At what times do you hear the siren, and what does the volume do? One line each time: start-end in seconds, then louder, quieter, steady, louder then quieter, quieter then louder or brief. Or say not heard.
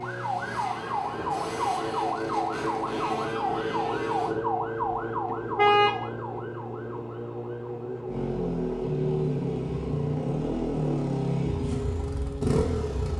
0.0-13.1 quieter.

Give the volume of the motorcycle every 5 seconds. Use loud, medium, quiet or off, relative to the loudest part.
medium, loud, loud.